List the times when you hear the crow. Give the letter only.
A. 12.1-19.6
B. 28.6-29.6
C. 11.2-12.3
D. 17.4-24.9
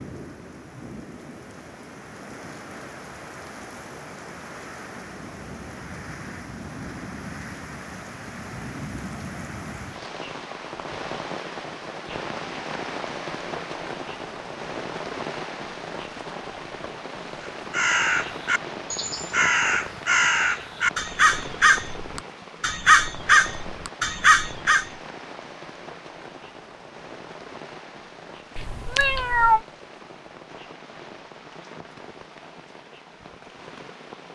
D.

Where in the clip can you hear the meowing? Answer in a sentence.
You can hear the meowing from 28.6 to 29.6 s.